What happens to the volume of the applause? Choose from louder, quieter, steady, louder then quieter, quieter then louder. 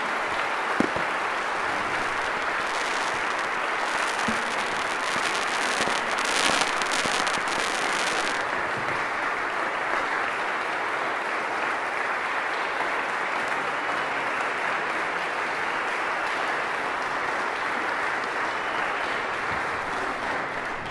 steady.